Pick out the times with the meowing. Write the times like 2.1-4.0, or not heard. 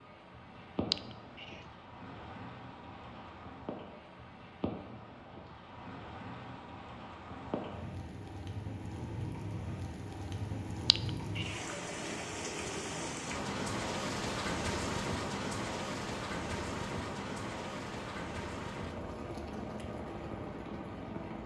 0.9-1.6, 10.8-11.6.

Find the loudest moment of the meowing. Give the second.
1 s.